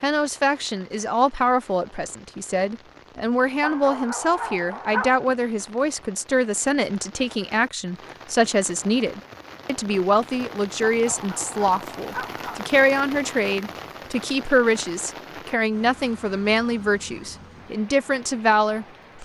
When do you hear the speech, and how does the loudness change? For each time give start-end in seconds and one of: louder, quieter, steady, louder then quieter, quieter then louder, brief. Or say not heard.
0.0-19.2 steady.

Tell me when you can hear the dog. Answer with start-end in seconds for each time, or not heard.
3.6-5.2, 10.8-12.7.